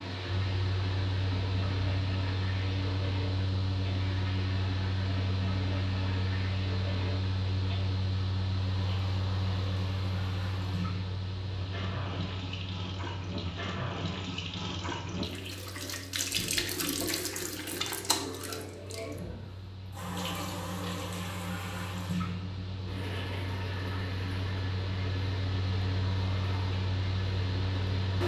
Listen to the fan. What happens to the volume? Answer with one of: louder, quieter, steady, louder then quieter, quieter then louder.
quieter then louder.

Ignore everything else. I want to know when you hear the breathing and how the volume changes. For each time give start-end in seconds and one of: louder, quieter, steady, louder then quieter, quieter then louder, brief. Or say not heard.
not heard.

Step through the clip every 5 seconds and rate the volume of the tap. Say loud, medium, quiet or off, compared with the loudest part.
medium, medium, loud, loud, loud, medium.